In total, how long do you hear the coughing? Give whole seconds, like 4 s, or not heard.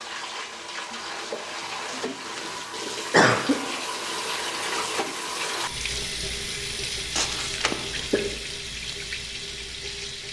3 s.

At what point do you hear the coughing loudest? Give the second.
3 s.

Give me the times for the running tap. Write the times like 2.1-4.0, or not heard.
0.0-10.2.